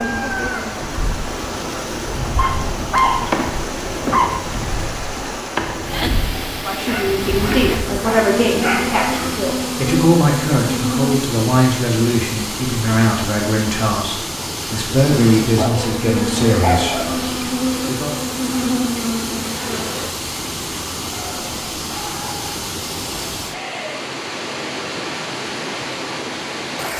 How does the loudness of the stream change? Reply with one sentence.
The volume of the stream stays about the same.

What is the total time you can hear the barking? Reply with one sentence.
You can hear the barking for 8 seconds altogether.